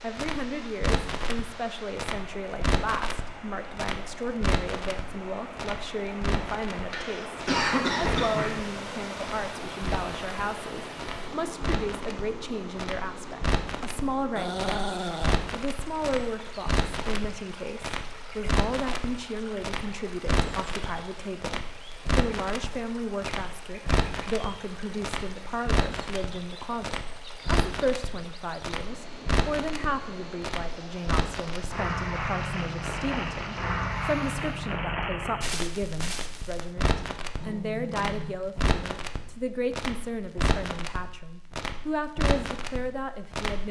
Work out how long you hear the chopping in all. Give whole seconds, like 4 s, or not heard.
not heard.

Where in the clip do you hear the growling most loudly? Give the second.
15 s.